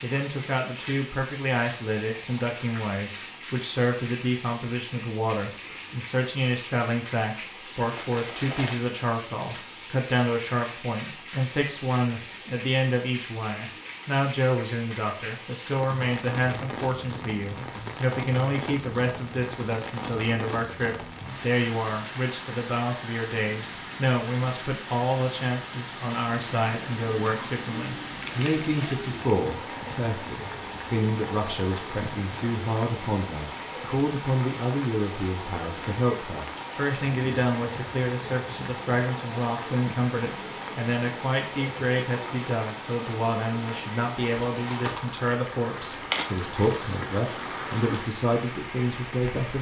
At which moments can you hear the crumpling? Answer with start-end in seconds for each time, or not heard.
7.9-8.9, 28.2-28.9, 44.5-47.0.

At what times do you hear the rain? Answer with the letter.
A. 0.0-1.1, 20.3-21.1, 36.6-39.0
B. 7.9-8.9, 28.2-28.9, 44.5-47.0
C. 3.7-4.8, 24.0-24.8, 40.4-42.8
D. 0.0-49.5
D.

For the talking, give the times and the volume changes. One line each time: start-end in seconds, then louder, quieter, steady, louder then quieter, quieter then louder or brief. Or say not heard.
0.0-49.5 steady.